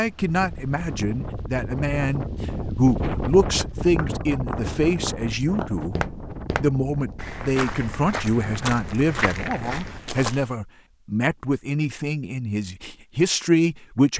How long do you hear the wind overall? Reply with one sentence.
You can hear the wind for 10 seconds altogether.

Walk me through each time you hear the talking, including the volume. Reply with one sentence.
You can hear the talking from 0.0 to 14.1 s, at a steady volume.